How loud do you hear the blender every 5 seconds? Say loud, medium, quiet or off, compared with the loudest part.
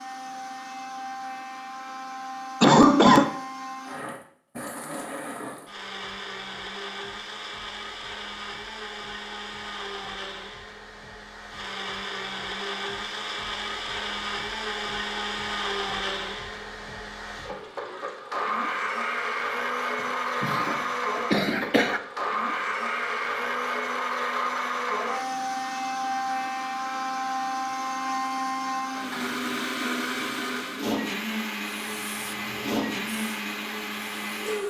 medium, medium, medium, loud, loud, loud, loud.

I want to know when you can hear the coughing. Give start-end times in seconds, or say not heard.
2.6-3.3, 20.4-22.0.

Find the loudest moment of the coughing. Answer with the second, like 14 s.
3 s.